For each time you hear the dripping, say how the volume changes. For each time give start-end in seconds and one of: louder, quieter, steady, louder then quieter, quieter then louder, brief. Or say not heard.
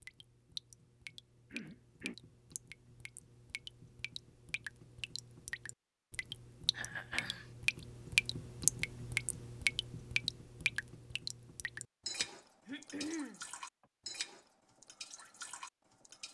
0.0-16.2 louder then quieter.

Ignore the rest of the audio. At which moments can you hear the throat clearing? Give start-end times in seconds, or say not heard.
1.5-2.1, 6.7-7.5, 12.2-13.8.